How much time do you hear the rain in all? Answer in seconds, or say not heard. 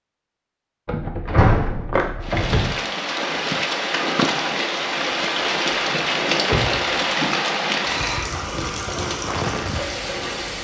8 s.